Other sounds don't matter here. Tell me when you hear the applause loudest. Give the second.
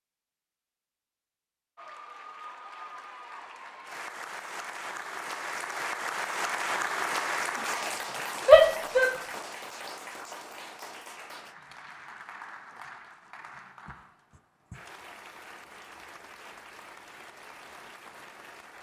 7 s.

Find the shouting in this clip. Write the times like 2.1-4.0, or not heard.
8.4-9.1.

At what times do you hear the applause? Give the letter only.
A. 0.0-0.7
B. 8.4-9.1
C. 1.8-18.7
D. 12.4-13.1
C.